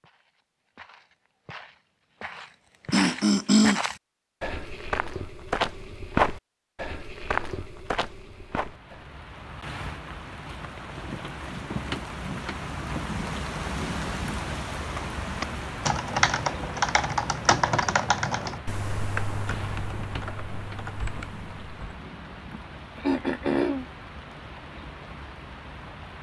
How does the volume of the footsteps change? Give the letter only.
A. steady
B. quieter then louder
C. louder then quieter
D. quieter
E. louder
C.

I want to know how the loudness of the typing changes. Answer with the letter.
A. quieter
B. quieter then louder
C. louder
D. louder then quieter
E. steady
A.